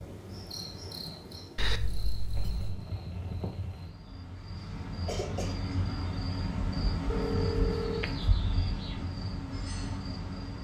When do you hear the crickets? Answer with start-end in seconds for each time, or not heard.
0.0-10.5.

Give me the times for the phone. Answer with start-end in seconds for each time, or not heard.
1.6-2.8, 7.1-8.3.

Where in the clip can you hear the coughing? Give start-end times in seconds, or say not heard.
4.5-5.5.